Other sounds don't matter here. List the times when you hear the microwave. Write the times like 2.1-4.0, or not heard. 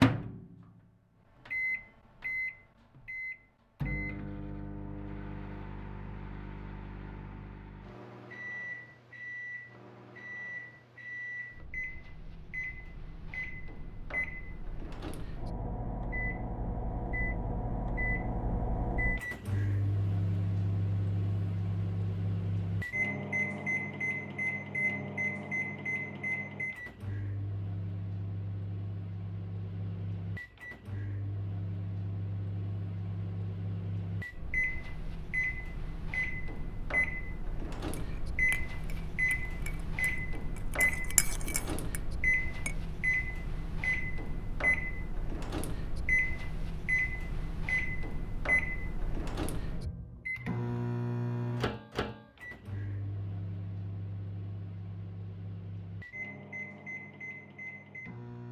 0.0-58.4.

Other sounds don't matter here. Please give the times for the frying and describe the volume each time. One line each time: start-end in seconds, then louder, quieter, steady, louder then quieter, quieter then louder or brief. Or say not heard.
not heard.